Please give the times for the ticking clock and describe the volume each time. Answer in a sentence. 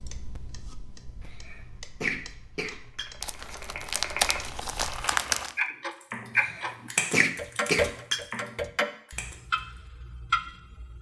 You can hear the ticking clock from 0.0 to 10.9 s, getting louder.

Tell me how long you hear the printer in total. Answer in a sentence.
The printer can't be heard in this clip.